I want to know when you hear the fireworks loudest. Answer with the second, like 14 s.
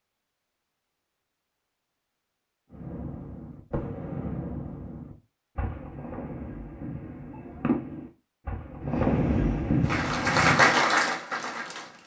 9 s.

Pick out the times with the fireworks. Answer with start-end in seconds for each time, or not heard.
2.7-10.4.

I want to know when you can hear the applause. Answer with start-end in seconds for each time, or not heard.
9.8-12.0.